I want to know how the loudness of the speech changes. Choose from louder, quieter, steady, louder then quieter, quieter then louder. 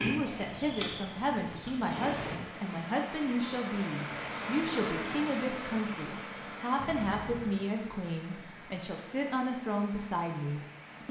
steady.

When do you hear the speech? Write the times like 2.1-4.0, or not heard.
0.0-11.0.